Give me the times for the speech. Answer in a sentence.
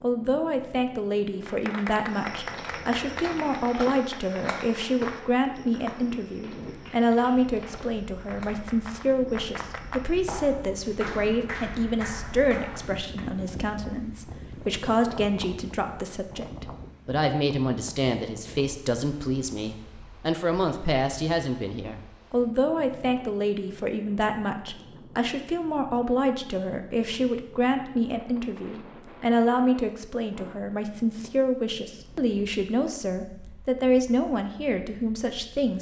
The speech can be heard from 0.0 to 35.7 s.